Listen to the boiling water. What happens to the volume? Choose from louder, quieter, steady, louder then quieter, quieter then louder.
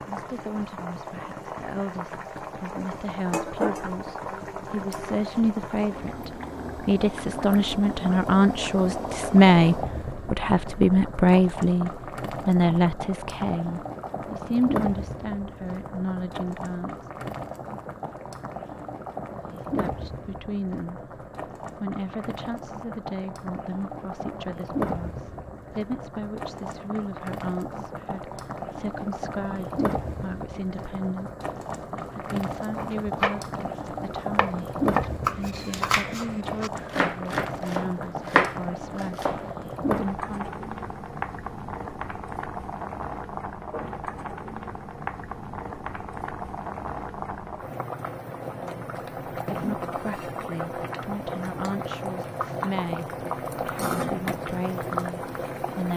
steady.